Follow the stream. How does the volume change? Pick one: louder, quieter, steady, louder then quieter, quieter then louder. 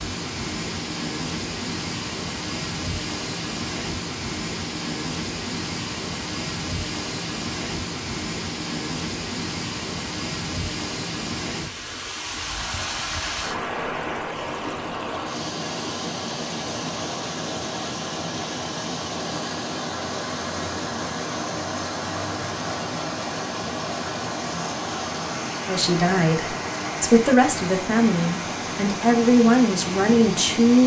steady.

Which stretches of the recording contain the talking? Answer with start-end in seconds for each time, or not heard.
25.6-30.8.